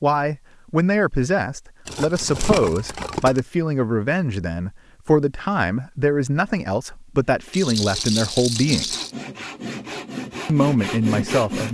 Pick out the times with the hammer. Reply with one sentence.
The hammer can't be heard in this clip.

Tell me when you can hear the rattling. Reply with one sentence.
You can hear the rattling from 1.9 to 3.4 s and from 7.5 to 9.2 s.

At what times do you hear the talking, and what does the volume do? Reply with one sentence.
The talking can be heard from 0.0 to 8.9 s, at a steady volume; and briefly from 10.4 to 11.6 s.